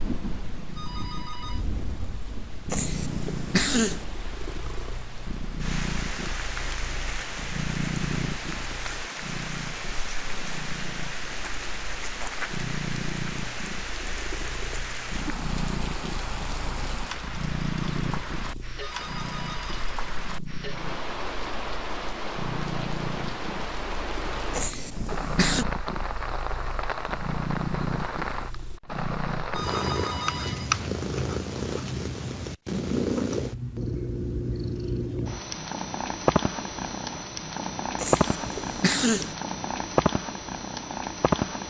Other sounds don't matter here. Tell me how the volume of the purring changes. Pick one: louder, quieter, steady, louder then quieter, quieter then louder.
louder.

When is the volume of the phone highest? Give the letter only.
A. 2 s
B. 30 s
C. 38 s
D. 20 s
B.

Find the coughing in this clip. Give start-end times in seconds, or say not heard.
2.7-4.0, 24.5-25.6, 38.0-39.4.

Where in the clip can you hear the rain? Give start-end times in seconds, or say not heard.
0.0-30.4.